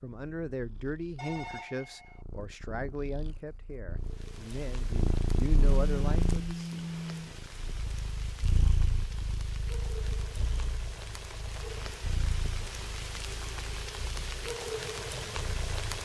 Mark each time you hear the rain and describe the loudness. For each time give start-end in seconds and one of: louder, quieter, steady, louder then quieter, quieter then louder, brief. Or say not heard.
4.0-16.0 louder.